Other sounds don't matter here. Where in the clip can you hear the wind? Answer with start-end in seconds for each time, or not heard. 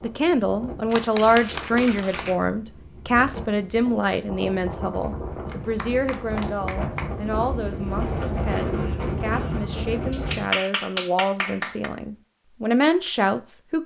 0.0-10.6.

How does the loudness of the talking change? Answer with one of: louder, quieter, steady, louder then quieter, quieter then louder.
quieter then louder.